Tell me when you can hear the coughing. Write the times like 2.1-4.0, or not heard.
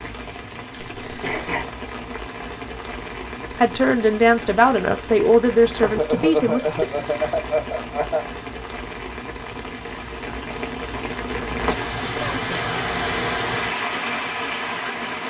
1.1-1.6, 5.8-8.2, 11.5-12.7.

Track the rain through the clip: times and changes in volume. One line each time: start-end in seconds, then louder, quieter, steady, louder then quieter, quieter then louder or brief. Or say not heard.
0.0-15.2 louder.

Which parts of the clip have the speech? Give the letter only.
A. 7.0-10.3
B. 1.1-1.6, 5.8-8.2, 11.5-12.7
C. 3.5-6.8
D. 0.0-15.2
C.